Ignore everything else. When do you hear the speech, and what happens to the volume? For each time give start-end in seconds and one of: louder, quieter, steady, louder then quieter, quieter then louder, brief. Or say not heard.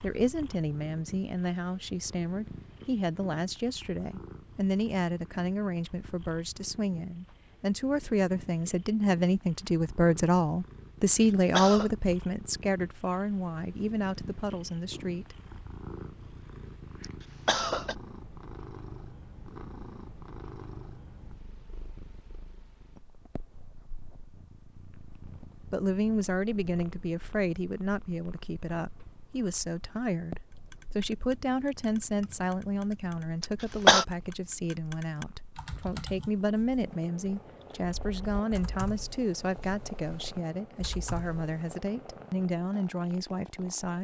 0.0-15.3 louder then quieter
25.7-43.9 steady.